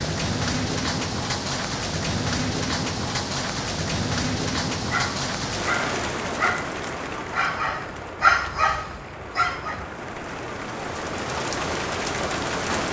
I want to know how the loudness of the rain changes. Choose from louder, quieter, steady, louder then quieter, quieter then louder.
quieter then louder.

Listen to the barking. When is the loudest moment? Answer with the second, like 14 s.
8 s.